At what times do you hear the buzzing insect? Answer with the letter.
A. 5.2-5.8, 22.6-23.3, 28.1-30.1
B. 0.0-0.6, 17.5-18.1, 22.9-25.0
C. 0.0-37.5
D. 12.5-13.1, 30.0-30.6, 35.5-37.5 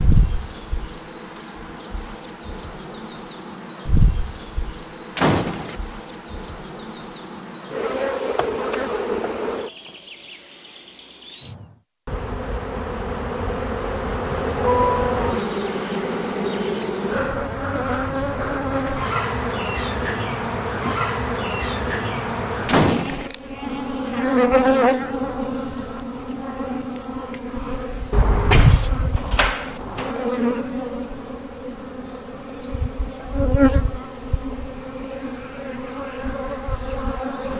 C.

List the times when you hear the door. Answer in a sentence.
You can hear the door from 5.2 to 5.8 s, from 22.6 to 23.3 s and from 28.1 to 30.1 s.